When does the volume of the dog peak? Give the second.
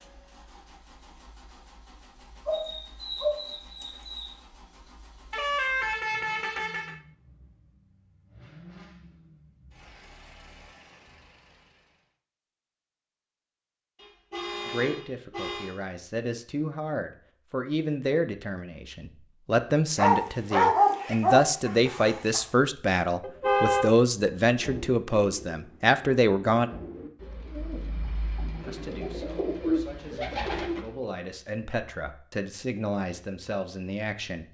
21 s.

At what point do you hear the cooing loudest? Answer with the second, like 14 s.
30 s.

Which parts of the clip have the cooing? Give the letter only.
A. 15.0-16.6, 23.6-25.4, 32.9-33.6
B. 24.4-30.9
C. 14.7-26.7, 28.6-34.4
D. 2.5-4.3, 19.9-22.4
B.